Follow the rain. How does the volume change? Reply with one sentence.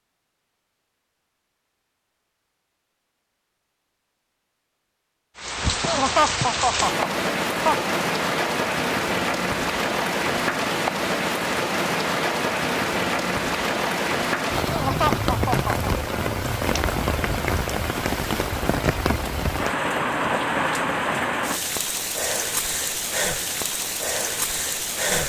The volume of the rain stays about the same.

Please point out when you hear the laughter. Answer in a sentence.
The laughter can be heard from 5.8 to 8.0 s and from 14.7 to 15.8 s.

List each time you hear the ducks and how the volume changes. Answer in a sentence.
The ducks can't be heard in this clip.